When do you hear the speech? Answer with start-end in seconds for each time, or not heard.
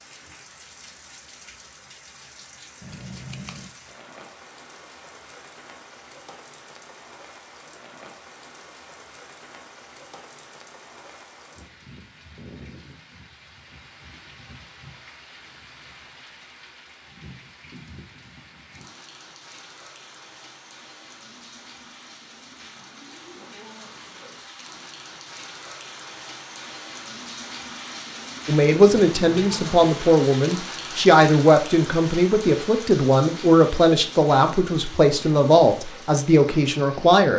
28.4-37.3.